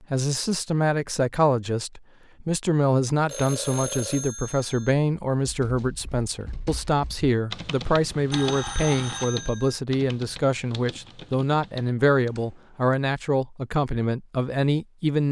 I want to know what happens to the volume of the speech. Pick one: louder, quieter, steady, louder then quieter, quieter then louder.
steady.